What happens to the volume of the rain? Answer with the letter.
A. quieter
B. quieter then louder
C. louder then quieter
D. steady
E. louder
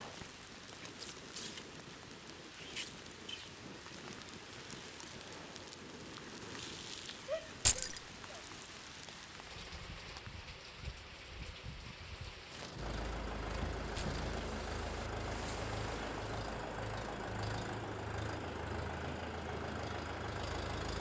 D.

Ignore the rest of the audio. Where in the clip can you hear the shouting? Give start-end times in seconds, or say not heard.
7.2-8.4.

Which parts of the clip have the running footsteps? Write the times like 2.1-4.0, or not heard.
not heard.